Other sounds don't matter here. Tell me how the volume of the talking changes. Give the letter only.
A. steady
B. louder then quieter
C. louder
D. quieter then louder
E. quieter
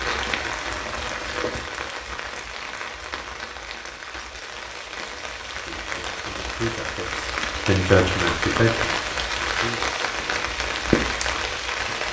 B.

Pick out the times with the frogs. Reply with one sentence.
The frogs can't be heard in this clip.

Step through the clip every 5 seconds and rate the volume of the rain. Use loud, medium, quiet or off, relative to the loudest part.
medium, loud, loud.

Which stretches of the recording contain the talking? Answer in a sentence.
The talking can be heard from 5.5 to 9.8 s.